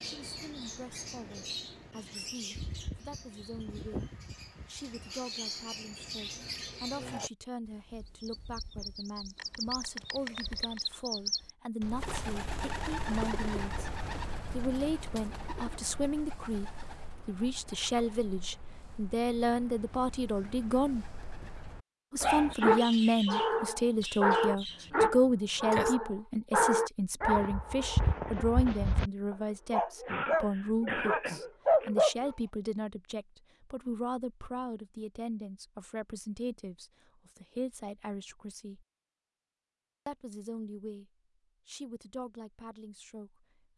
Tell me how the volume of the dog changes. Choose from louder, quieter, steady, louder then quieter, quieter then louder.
quieter then louder.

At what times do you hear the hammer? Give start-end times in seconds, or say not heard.
not heard.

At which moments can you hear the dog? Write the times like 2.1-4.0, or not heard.
22.2-32.3.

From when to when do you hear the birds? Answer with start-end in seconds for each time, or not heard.
0.0-24.9.